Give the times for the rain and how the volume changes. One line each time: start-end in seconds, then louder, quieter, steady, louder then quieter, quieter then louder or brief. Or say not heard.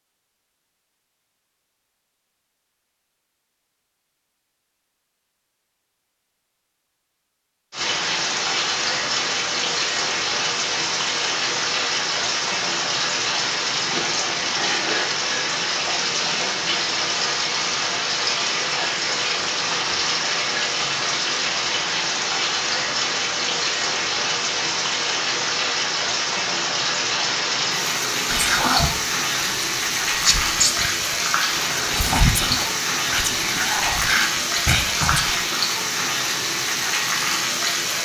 7.7-37.9 steady.